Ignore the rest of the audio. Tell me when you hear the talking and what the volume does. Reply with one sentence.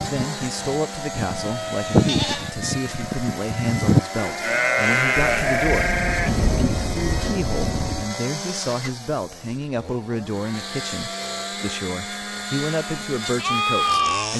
You can hear the talking from 0.1 to 14.3 s, at a steady volume.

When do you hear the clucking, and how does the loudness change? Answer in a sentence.
You can't hear the clucking here.